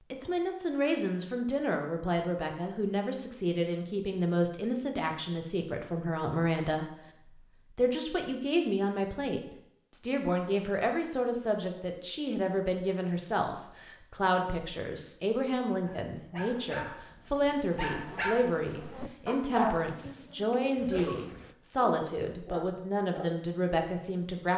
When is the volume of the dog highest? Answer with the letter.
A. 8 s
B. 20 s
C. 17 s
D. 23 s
B.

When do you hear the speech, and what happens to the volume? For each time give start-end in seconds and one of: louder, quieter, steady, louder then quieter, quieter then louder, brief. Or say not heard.
0.1-24.5 steady.